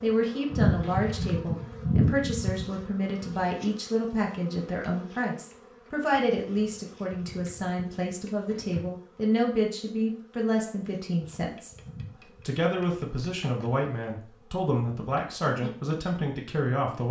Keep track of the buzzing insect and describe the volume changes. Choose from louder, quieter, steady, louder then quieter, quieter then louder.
quieter.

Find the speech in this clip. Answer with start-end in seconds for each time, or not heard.
0.0-17.0.